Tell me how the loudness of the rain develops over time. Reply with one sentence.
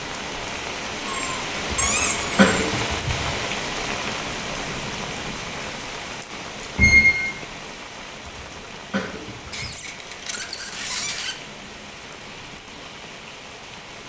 The volume of the rain goes down.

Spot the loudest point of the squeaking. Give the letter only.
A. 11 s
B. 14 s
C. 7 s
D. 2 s
C.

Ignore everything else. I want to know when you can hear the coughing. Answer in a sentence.
You can hear the coughing from 1.7 to 3.4 s and from 8.2 to 9.8 s.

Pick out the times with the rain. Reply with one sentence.
The rain can be heard from 0.0 to 14.0 s.